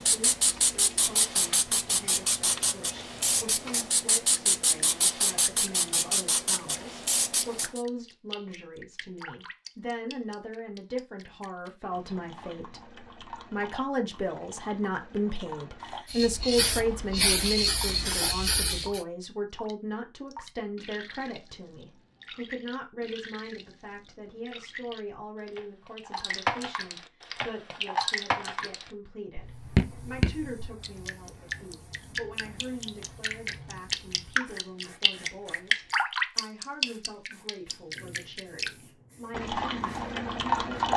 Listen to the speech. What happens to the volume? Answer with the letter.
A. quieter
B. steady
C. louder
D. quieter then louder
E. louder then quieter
E.